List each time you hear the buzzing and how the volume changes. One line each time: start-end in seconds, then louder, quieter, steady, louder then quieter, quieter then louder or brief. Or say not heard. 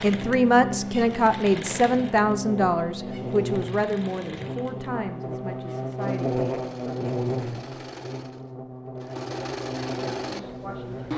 0.0-11.1 louder then quieter.